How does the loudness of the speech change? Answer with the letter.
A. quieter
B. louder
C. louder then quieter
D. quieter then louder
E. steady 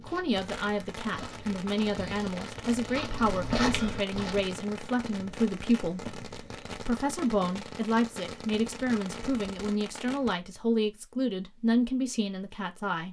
E.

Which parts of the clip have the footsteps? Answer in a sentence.
You can hear the footsteps from 0.0 to 4.5 s.